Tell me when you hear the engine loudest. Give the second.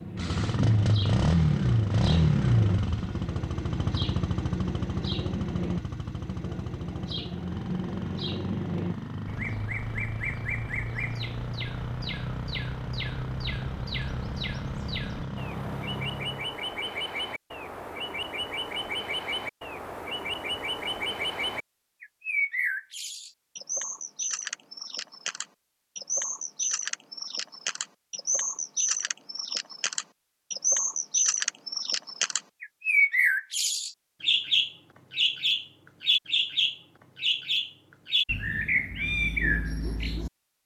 2 s.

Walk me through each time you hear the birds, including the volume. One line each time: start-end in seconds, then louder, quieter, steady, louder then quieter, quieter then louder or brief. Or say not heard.
0.0-40.3 louder.